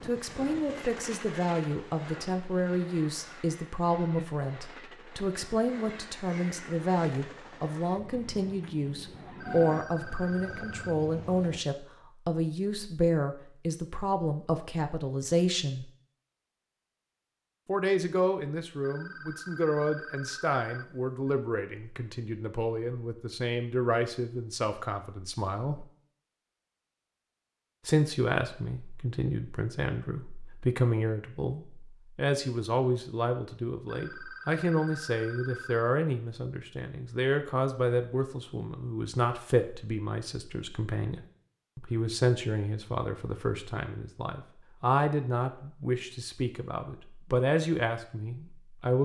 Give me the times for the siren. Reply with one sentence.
You can't hear the siren here.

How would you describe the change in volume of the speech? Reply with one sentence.
The loudness of the speech stays about the same.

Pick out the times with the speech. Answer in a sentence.
You can hear the speech from 0.0 to 15.8 s, from 17.6 to 25.9 s and from 27.9 to 49.0 s.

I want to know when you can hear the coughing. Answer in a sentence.
You can't hear the coughing here.